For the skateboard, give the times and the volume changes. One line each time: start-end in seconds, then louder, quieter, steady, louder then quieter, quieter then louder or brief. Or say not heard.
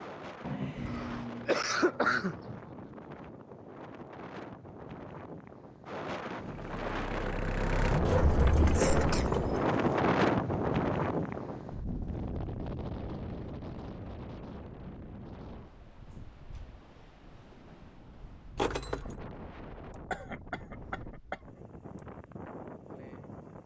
not heard.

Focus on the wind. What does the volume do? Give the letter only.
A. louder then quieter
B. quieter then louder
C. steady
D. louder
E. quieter
A.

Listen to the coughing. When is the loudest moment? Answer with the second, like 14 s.
2 s.